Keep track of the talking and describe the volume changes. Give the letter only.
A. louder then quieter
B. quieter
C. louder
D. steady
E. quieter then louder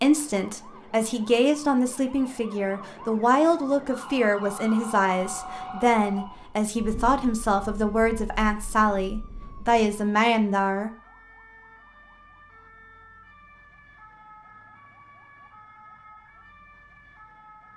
D.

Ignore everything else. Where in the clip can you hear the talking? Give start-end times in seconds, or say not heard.
0.0-10.9.